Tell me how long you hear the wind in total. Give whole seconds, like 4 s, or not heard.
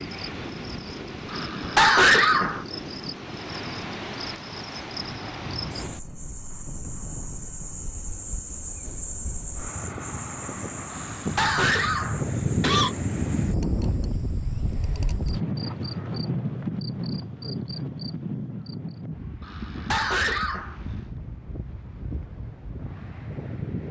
24 s.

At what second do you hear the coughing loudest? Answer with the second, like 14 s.
2 s.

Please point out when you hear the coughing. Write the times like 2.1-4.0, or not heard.
1.3-2.6, 10.9-12.9, 19.4-20.8.